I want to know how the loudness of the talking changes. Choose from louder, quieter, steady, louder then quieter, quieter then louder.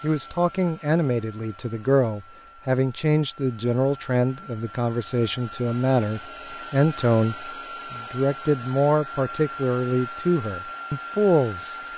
steady.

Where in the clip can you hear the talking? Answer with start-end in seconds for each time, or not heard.
0.0-11.8.